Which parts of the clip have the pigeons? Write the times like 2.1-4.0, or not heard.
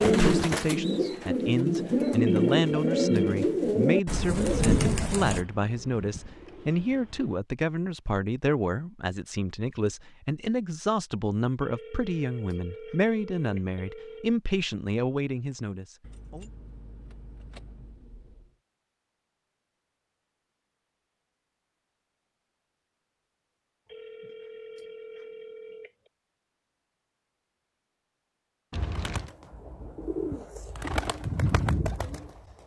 0.0-7.4, 28.9-32.6.